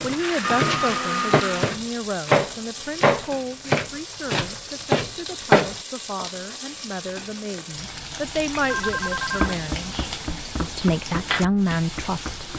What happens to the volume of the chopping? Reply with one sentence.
The loudness of the chopping goes down.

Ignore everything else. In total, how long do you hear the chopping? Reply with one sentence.
You can hear the chopping for 10 seconds altogether.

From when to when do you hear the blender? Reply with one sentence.
You can hear the blender from 0.0 to 1.8 s.